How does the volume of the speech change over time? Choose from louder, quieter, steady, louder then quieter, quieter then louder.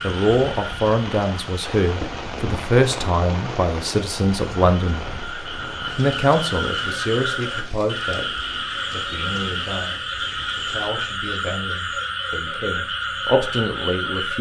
quieter then louder.